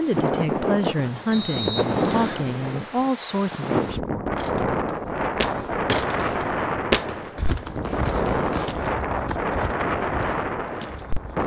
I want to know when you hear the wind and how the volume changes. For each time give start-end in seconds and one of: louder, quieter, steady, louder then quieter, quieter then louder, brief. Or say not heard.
0.0-11.4 steady.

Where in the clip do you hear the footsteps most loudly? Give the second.
7 s.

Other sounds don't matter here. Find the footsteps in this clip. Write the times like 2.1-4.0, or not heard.
4.3-11.4.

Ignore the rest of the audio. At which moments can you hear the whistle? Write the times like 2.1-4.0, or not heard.
1.3-2.5.